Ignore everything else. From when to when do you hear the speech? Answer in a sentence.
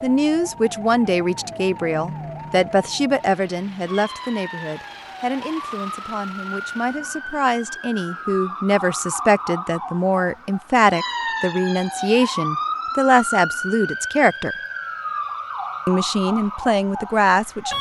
You can hear the speech from 0.0 to 14.6 s and from 15.8 to 17.7 s.